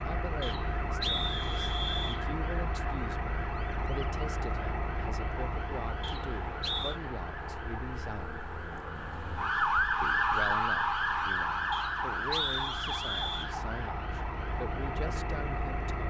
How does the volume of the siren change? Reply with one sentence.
The loudness of the siren goes up, then down.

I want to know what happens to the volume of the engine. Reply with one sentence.
The loudness of the engine goes down, then up.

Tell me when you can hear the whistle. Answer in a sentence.
The whistle can be heard from 0.4 to 2.2 s, from 6.0 to 7.0 s and from 11.7 to 13.5 s.